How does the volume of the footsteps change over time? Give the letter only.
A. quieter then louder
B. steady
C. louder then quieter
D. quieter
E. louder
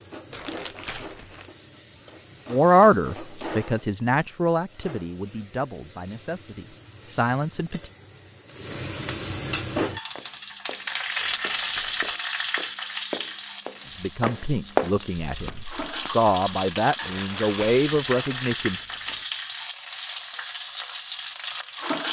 C.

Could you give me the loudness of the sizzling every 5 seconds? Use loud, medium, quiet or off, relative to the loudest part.
quiet, medium, loud, loud, loud.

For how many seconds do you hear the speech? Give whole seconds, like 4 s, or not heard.
10 s.